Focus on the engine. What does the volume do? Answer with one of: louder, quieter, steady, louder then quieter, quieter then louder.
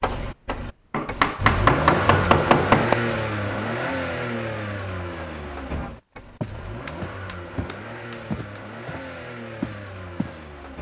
quieter.